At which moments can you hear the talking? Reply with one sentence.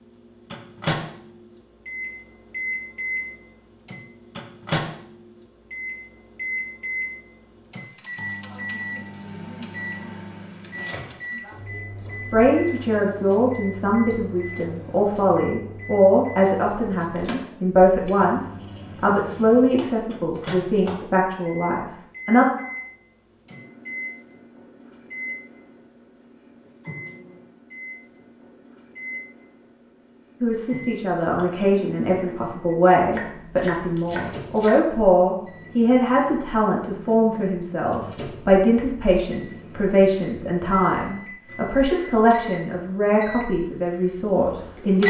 You can hear the talking from 12.3 to 22.4 s and from 30.4 to 45.0 s.